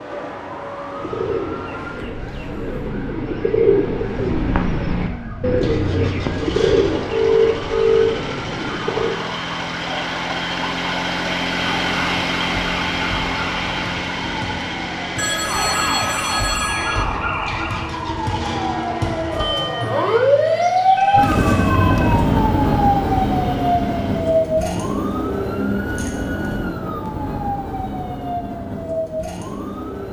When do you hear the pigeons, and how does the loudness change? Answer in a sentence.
You can hear the pigeons from 1.0 to 9.2 s, getting louder then quieter.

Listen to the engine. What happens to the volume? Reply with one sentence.
The volume of the engine goes up, then down.